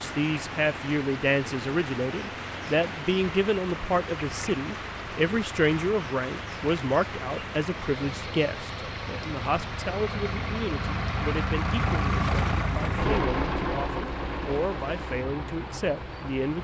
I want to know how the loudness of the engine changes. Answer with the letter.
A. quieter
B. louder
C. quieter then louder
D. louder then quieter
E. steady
B.